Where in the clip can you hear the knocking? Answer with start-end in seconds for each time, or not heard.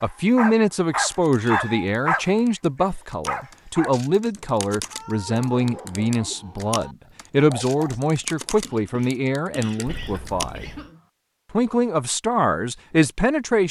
not heard.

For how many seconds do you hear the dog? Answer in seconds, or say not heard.
7 s.